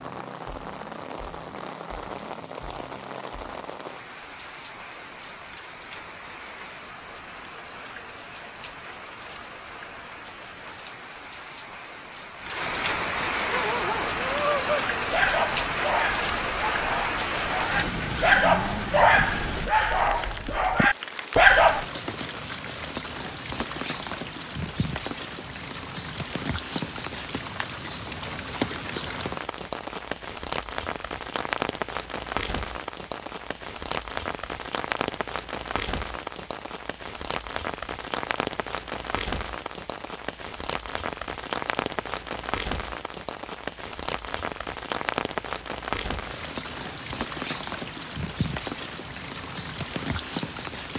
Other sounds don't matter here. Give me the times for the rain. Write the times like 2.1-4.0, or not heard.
0.0-50.9.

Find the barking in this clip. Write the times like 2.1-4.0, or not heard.
13.4-21.9.